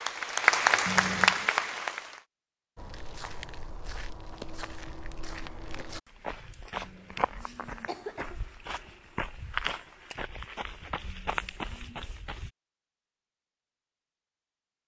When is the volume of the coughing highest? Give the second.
1 s.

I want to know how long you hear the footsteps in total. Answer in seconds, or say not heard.
10 s.